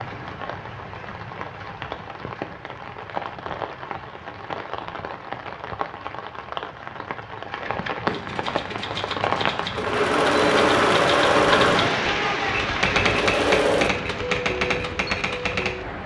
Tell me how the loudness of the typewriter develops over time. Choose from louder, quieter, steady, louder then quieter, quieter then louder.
louder.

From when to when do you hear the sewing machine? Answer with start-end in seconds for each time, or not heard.
9.8-13.9.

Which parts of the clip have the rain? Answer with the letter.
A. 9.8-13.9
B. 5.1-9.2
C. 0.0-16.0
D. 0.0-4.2
C.